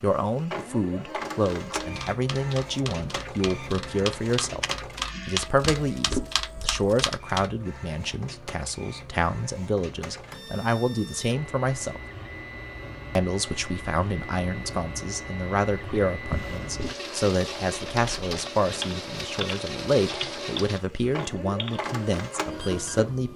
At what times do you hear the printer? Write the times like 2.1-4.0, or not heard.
0.0-23.3.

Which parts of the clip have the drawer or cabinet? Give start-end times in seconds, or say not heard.
5.6-6.3, 16.3-16.9.